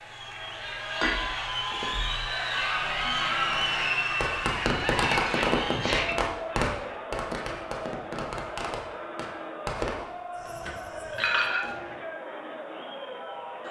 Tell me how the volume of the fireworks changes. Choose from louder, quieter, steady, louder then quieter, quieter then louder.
quieter.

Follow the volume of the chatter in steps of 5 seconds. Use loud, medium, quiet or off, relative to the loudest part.
loud, medium, medium.